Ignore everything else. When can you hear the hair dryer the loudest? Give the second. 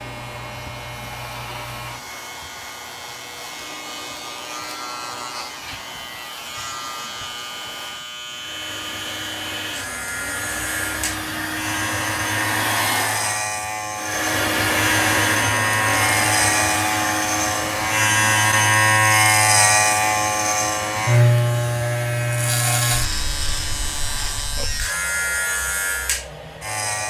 15 s.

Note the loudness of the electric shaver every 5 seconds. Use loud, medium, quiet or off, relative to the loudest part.
quiet, quiet, medium, loud, loud, medium.